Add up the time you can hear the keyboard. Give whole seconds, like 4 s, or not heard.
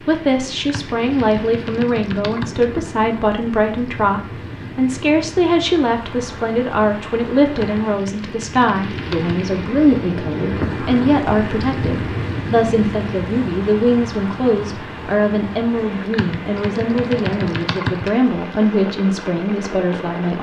6 s.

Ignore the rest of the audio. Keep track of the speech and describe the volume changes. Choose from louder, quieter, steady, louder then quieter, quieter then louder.
steady.